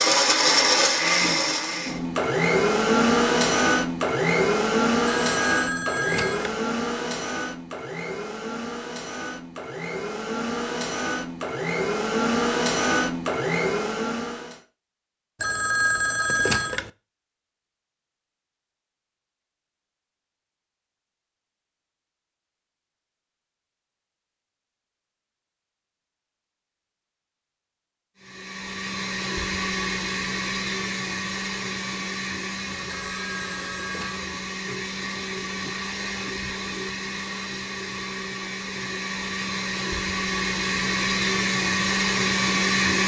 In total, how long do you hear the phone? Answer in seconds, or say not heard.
4 s.